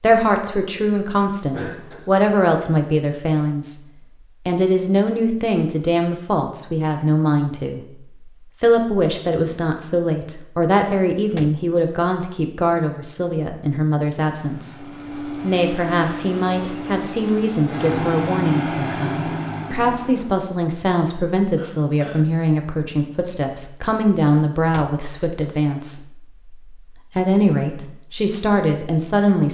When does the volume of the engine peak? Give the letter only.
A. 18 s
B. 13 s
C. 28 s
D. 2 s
A.